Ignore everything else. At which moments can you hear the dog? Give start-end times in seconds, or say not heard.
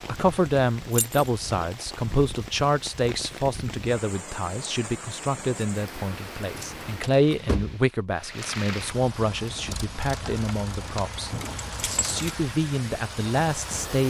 not heard.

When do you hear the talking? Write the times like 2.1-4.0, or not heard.
0.1-14.0.